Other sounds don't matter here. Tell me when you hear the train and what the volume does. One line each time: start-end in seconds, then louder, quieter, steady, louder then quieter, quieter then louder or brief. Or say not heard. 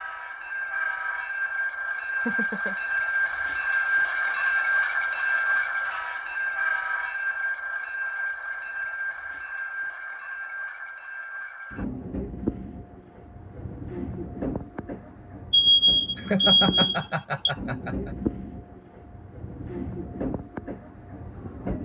0.0-21.7 quieter.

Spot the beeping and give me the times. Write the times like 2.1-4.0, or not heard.
15.5-17.5.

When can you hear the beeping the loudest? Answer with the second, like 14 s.
16 s.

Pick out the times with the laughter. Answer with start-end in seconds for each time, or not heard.
2.1-2.8, 16.1-18.1.